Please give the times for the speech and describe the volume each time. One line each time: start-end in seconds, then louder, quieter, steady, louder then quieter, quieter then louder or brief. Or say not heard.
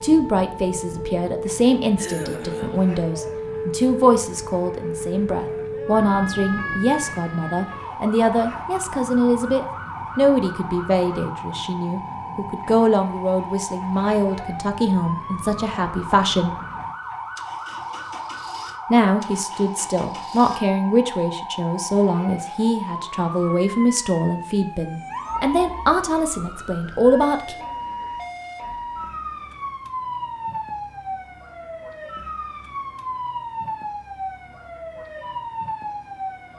0.0-16.6 steady
18.9-27.6 steady.